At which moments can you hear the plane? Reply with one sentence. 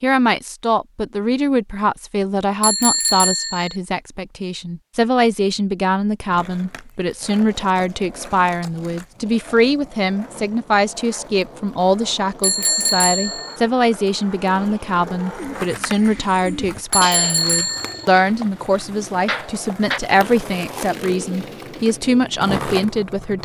The plane can't be heard in this clip.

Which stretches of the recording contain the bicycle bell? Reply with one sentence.
The bicycle bell can be heard from 2.6 to 3.8 s, from 12.4 to 13.6 s and from 16.9 to 18.1 s.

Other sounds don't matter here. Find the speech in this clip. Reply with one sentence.
The speech can be heard from 0.0 to 23.4 s.